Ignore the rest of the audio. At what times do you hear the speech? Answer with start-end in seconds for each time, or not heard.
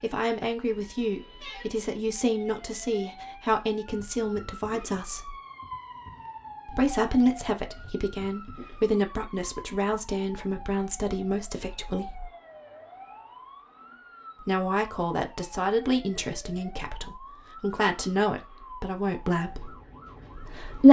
0.0-5.3, 6.7-12.3, 14.4-19.8, 20.4-20.8.